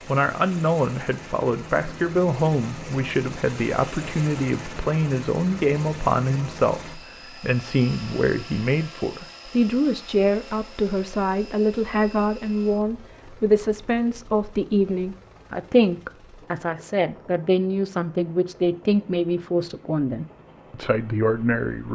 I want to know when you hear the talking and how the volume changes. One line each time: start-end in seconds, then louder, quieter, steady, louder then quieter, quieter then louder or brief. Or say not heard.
0.1-21.9 steady.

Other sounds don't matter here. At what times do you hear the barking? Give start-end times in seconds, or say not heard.
not heard.